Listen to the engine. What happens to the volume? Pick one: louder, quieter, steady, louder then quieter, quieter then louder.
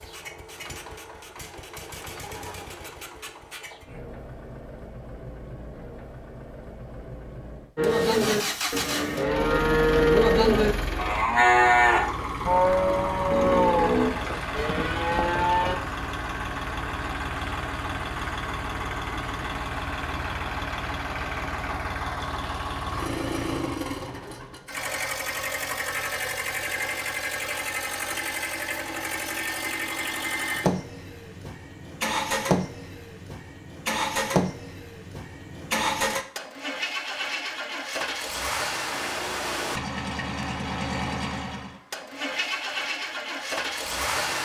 louder.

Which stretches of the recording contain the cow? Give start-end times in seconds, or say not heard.
7.8-15.8.